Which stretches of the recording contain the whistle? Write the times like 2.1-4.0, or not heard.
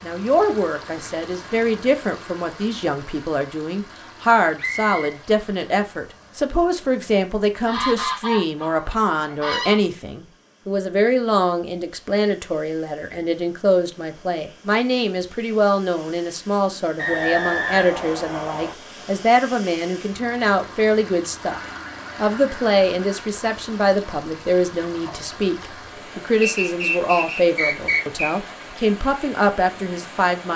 4.5-5.0, 16.9-18.8, 26.4-28.2.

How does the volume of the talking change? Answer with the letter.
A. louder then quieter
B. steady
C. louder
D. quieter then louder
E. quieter
B.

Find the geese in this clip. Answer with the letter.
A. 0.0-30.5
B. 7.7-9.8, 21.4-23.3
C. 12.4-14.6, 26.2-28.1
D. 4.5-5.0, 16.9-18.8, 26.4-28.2
B.